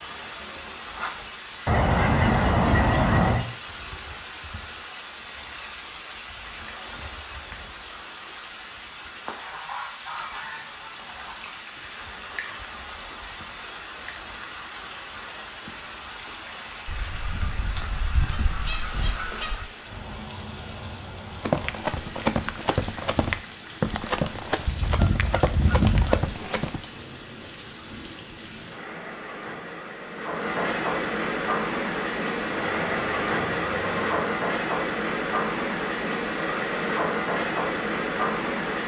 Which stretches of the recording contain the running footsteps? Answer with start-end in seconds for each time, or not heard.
21.4-26.9.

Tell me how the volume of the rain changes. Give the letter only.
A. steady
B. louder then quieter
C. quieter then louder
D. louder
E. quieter
D.